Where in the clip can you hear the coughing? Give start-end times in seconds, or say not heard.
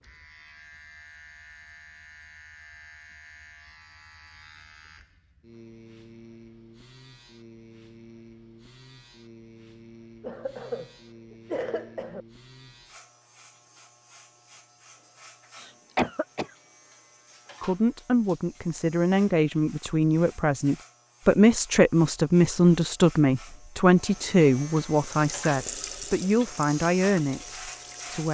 10.2-12.2, 15.6-16.5.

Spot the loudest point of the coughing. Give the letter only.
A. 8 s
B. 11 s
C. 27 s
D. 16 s
D.